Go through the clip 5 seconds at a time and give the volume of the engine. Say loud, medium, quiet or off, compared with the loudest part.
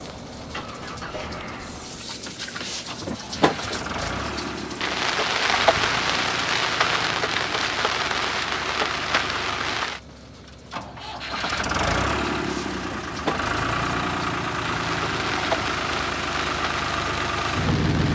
medium, medium, loud, loud.